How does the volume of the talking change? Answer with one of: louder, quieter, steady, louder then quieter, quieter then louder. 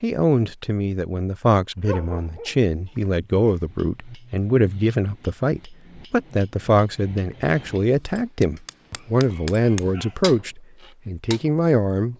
steady.